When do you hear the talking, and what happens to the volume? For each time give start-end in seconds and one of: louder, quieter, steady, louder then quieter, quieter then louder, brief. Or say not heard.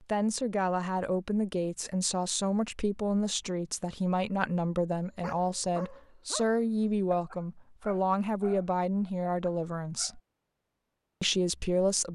0.0-10.2 steady
11.2-12.0 brief.